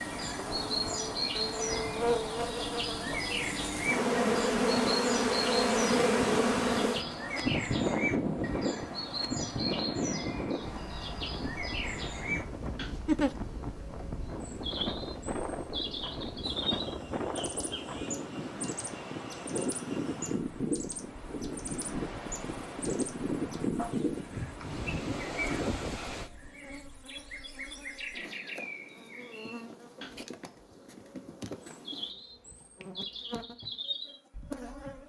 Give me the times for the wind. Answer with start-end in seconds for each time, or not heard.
0.1-26.3.